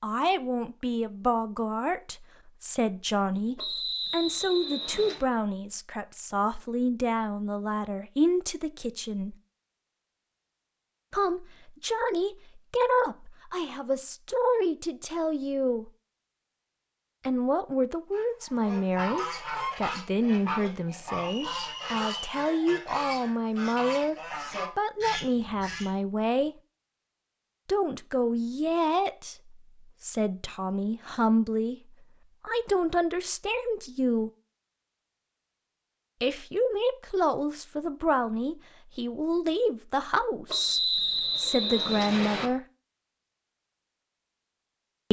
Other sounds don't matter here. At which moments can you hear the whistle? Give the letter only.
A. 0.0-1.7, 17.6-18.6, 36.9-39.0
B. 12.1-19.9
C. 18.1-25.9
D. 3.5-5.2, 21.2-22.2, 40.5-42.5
D.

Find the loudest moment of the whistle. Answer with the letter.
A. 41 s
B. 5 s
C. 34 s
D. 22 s
A.